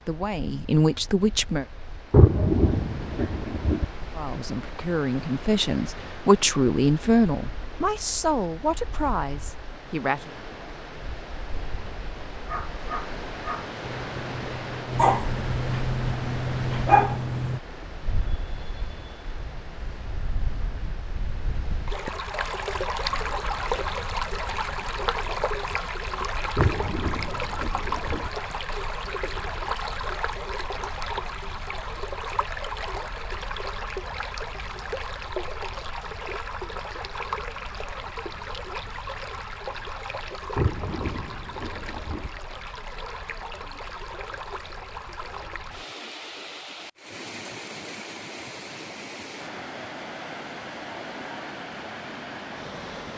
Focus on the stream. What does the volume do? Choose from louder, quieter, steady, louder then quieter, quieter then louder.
louder then quieter.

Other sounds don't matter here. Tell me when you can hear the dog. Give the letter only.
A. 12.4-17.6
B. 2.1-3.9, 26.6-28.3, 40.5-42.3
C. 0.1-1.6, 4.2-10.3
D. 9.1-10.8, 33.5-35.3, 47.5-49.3
A.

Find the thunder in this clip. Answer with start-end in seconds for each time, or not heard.
2.1-3.9, 26.6-28.3, 40.5-42.3.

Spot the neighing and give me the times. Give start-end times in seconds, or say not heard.
not heard.